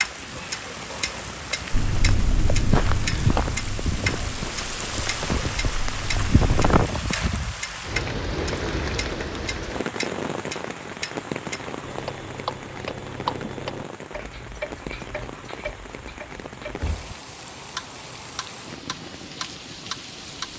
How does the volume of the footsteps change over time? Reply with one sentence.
The loudness of the footsteps goes down.